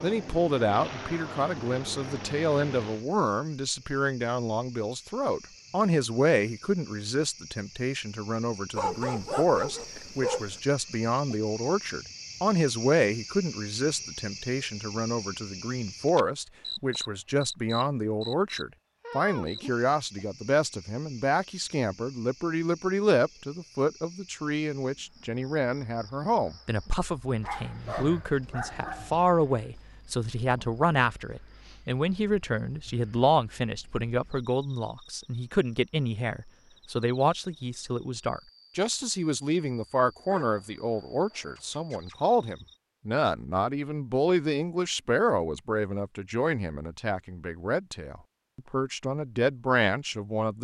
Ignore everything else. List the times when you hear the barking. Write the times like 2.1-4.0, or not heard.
8.8-10.6, 27.4-29.3, 40.3-42.1.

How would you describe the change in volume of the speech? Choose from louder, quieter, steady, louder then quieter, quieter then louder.
steady.